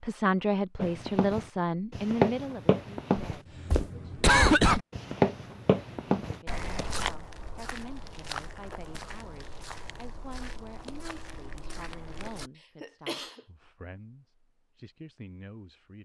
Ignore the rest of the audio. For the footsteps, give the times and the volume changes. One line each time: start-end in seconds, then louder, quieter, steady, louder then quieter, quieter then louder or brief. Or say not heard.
0.8-12.5 quieter.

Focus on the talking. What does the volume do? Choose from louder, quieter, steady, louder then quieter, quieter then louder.
quieter.